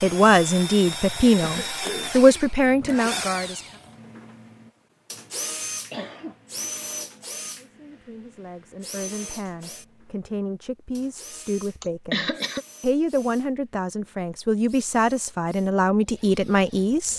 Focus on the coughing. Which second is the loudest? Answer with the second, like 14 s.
12 s.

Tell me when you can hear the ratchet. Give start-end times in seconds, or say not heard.
not heard.